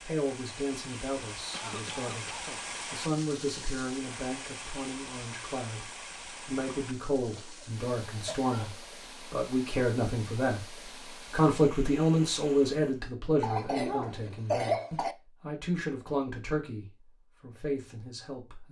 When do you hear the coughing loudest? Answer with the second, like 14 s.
15 s.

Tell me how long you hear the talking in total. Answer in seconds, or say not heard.
17 s.